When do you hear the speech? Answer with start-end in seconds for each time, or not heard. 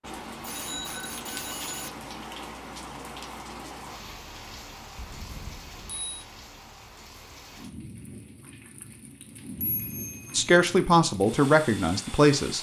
10.3-12.5.